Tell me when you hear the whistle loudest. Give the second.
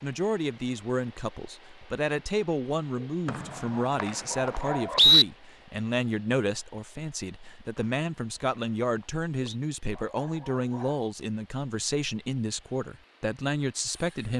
5 s.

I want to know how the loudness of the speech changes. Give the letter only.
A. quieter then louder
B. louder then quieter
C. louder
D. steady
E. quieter
D.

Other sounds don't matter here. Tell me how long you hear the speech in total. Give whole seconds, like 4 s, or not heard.
14 s.